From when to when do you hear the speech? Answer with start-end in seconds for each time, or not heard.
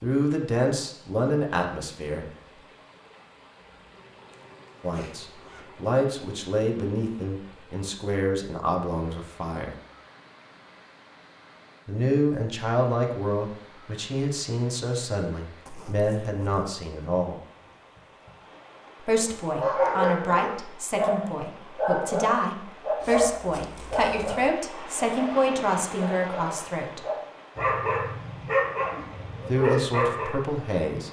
0.0-2.2, 4.8-9.8, 11.8-17.4, 19.0-27.1, 29.4-31.0.